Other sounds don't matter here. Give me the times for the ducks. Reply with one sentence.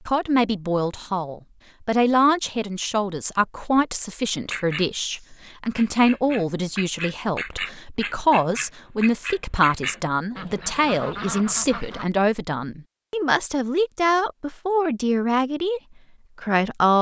The ducks can be heard from 4.5 to 12.1 s.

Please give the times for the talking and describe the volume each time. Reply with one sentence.
The talking can be heard from 0.1 to 16.9 s, at a steady volume.